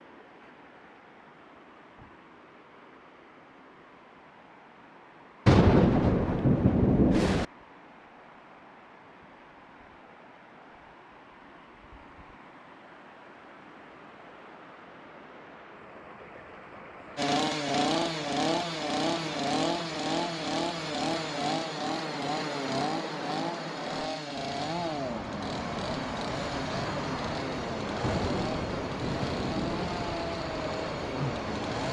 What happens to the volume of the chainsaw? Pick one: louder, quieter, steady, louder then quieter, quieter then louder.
quieter.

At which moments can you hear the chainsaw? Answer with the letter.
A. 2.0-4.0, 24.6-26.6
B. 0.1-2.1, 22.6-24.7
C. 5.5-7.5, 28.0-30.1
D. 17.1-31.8
D.